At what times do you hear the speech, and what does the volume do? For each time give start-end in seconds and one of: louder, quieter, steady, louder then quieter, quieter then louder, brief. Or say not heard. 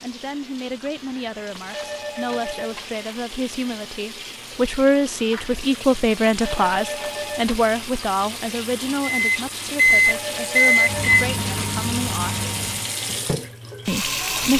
0.0-12.4 louder then quieter
13.8-14.5 brief.